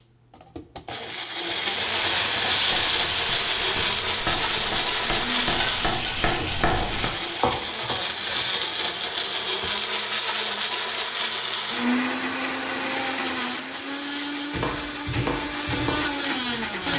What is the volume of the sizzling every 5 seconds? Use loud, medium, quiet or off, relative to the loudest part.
loud, loud, off, off.